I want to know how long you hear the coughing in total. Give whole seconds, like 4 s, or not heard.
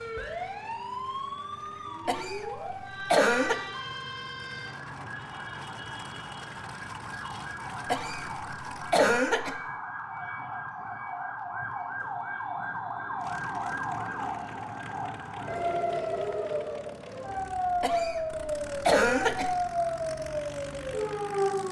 5 s.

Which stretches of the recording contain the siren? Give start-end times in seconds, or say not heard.
0.0-21.6.